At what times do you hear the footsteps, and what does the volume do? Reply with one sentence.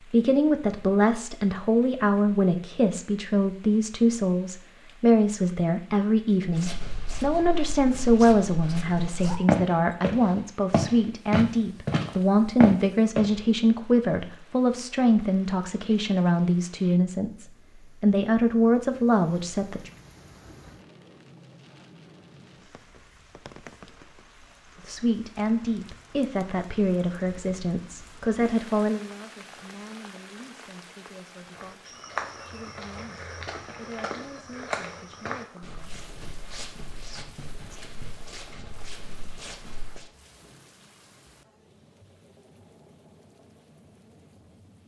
The footsteps can be heard from 6.5 to 13.4 s, getting louder; and from 31.6 to 40.1 s, getting quieter.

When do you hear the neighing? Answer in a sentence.
The neighing can't be heard in this clip.